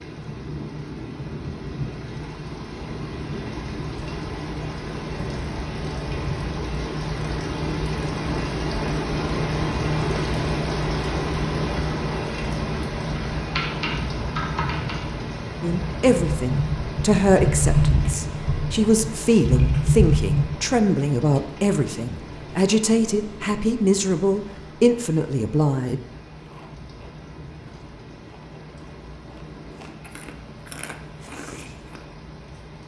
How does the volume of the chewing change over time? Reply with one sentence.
The loudness of the chewing goes up.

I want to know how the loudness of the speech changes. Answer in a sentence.
The loudness of the speech stays about the same.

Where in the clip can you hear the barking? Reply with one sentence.
You can't hear the barking here.